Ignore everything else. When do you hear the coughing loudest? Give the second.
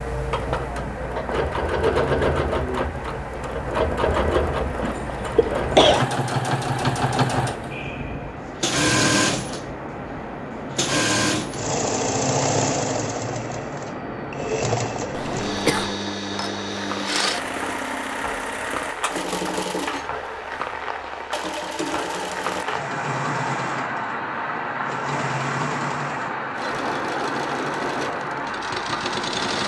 6 s.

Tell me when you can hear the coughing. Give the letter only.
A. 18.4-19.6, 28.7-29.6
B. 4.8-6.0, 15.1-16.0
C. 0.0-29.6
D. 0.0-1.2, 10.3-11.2
B.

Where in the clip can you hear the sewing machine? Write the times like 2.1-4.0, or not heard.
0.0-29.6.